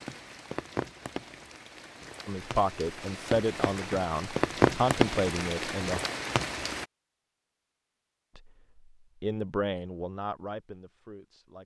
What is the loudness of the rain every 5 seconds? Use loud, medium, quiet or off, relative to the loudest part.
loud, loud, off.